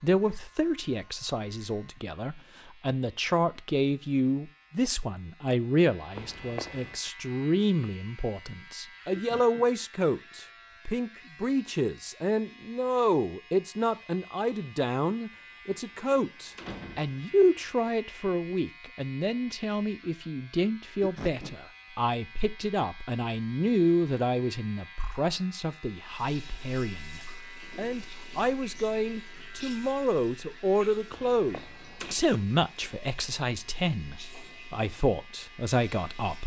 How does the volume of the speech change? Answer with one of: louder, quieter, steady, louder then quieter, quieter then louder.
steady.